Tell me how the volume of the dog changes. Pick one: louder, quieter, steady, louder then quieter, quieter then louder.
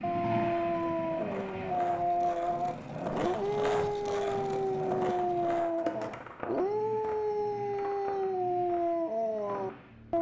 steady.